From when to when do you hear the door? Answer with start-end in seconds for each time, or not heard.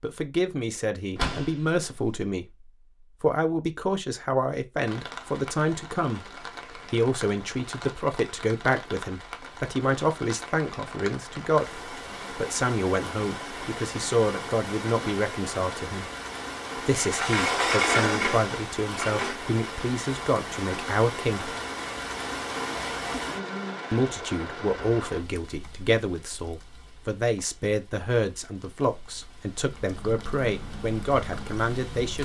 1.1-2.1, 16.9-19.4.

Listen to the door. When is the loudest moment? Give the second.
18 s.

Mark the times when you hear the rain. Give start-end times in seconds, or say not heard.
4.8-32.2.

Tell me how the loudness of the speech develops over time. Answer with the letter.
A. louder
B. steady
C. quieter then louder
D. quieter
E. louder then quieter
B.